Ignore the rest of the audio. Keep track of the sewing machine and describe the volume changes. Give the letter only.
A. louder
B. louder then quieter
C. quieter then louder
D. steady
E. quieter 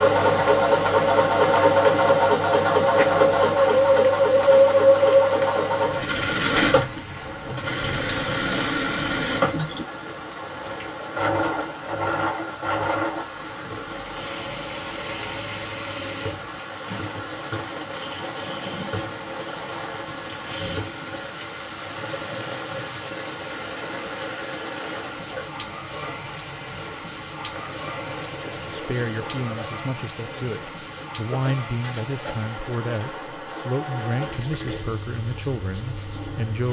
E.